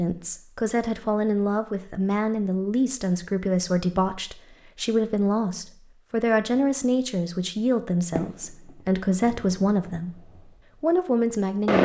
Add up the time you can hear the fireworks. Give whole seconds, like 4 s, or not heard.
2 s.